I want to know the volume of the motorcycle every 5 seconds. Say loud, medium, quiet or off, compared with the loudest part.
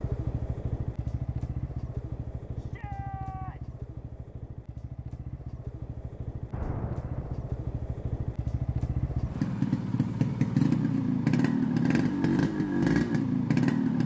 quiet, medium, loud.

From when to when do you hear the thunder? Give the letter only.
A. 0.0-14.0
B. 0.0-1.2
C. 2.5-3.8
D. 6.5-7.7
D.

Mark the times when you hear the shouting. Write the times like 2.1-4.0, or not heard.
2.5-3.8.